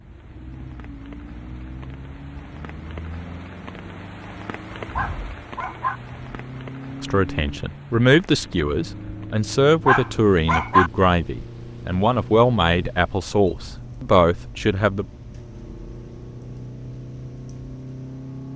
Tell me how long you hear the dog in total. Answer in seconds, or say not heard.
2 s.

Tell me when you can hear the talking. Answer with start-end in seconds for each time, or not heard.
7.0-15.1.